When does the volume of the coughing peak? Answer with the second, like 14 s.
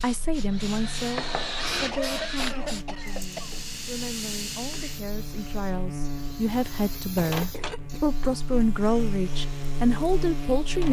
2 s.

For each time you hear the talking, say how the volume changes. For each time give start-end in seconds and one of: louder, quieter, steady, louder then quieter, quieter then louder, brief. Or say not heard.
0.0-10.8 quieter then louder.